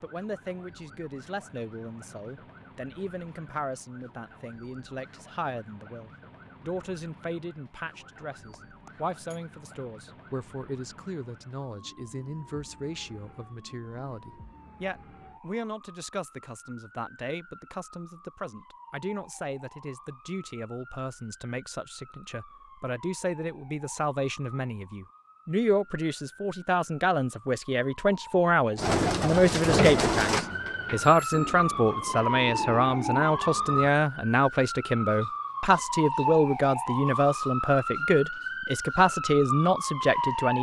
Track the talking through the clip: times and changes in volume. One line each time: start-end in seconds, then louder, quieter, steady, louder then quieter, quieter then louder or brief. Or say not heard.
0.0-40.5 louder.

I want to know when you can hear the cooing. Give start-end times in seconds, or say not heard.
28.8-34.0.